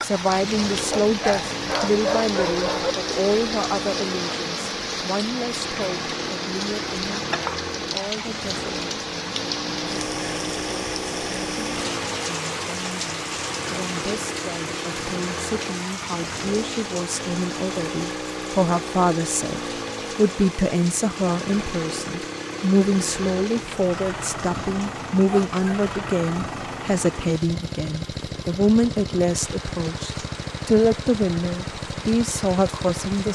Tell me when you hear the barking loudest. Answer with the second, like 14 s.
2 s.